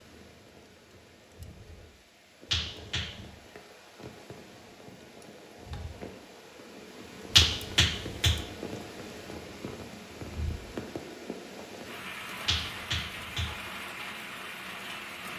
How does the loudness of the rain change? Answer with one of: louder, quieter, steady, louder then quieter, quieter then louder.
louder.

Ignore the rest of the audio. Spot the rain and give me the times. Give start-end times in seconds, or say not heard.
0.0-15.3.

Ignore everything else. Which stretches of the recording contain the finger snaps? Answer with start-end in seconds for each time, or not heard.
2.5-3.2, 7.3-8.4, 12.4-13.6.